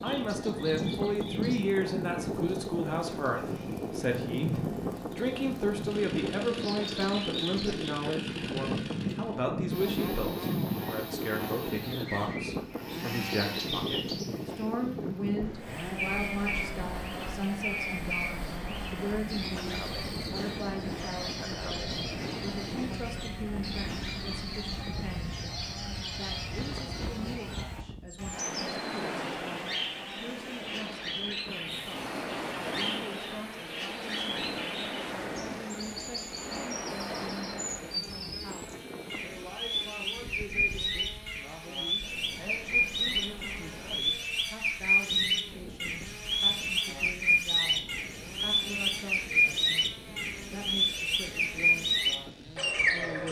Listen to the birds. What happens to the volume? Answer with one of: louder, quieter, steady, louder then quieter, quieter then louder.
louder.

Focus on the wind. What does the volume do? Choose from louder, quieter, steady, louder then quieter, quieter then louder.
quieter.